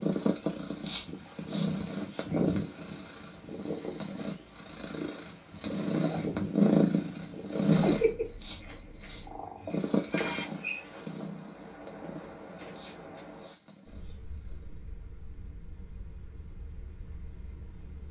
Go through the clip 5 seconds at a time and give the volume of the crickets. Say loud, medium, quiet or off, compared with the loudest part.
loud, loud, loud, medium.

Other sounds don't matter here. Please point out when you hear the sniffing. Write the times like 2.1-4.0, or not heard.
0.8-2.4, 8.3-9.2, 12.7-14.2.